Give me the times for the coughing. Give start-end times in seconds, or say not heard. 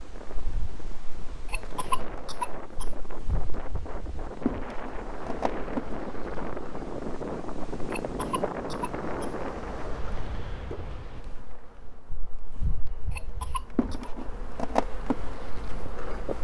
1.4-2.9, 7.9-9.3, 13.1-14.1.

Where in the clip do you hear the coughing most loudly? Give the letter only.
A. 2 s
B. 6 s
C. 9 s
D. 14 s
A.